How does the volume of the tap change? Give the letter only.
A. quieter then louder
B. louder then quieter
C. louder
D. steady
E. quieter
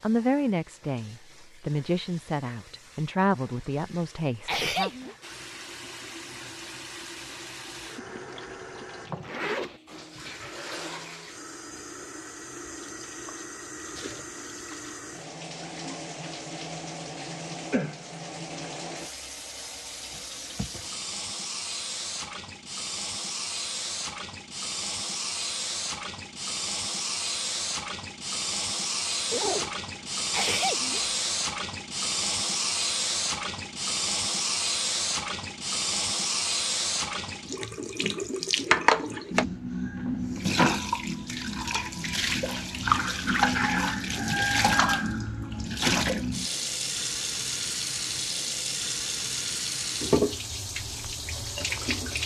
C.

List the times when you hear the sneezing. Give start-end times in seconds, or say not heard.
4.5-5.2, 30.3-31.1.